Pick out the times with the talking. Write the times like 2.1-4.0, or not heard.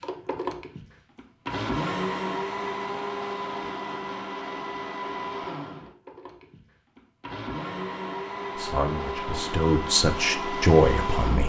8.6-11.4.